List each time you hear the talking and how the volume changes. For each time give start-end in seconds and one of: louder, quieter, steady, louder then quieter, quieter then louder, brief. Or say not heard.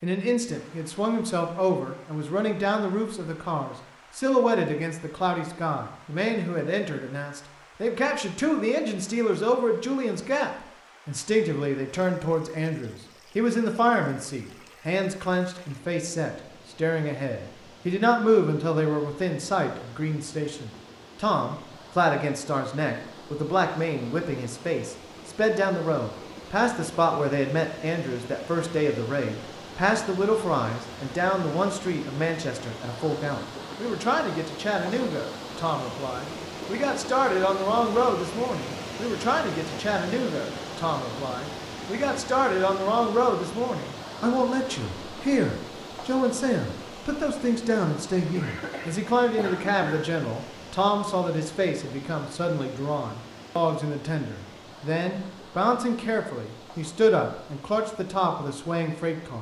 0.0-59.3 steady.